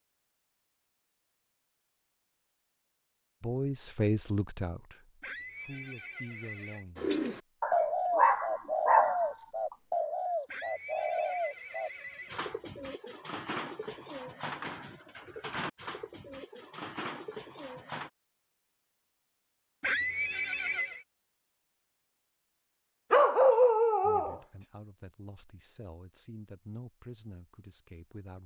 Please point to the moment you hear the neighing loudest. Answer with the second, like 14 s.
20 s.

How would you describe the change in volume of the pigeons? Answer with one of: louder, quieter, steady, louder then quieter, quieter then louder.
quieter.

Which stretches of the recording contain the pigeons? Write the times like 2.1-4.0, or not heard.
7.0-18.1.